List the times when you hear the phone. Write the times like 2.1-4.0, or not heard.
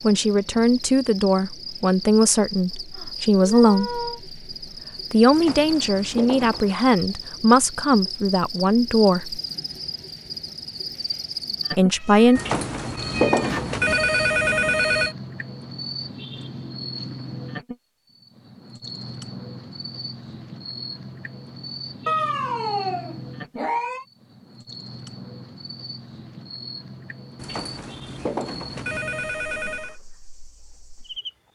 5.3-6.8, 12.3-15.2, 27.4-29.9.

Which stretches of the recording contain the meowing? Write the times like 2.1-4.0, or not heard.
3.0-4.2, 11.9-13.7, 22.1-24.1.